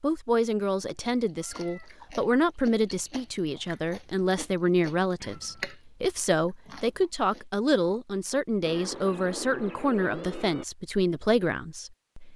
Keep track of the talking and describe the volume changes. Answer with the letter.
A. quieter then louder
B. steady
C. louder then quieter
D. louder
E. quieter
B.